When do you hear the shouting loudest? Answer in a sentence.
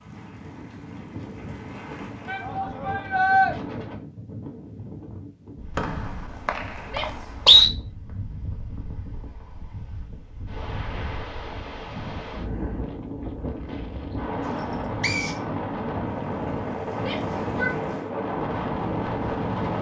The loudest moment of the shouting is at 3 seconds.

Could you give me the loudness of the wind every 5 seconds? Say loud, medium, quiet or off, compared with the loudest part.
medium, quiet, medium, loud.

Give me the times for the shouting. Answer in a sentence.
You can hear the shouting from 2.2 to 3.5 s, from 6.8 to 7.3 s and from 17.0 to 17.8 s.